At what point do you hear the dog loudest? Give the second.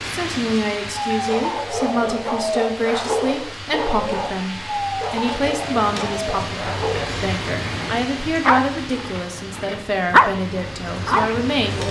10 s.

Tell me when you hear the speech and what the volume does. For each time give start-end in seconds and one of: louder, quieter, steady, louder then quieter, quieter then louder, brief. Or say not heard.
0.0-11.8 steady.